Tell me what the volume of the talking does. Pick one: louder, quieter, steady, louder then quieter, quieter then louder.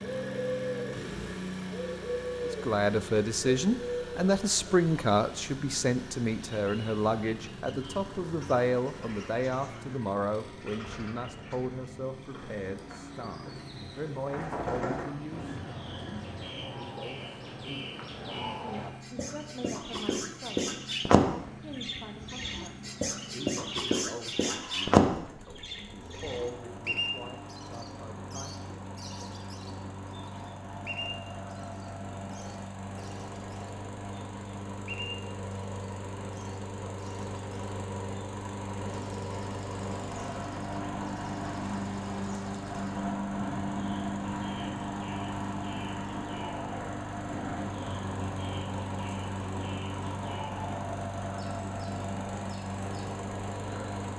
quieter.